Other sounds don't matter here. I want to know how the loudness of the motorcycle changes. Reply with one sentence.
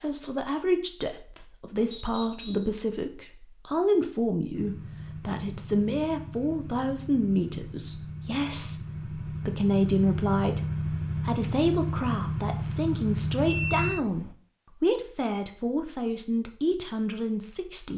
The volume of the motorcycle goes up.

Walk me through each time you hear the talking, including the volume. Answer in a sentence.
The talking can be heard from 0.0 to 17.9 s, at a steady volume.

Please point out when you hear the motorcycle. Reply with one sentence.
You can hear the motorcycle from 4.5 to 14.3 s.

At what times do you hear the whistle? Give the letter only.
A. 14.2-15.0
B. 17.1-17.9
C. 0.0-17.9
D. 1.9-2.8
D.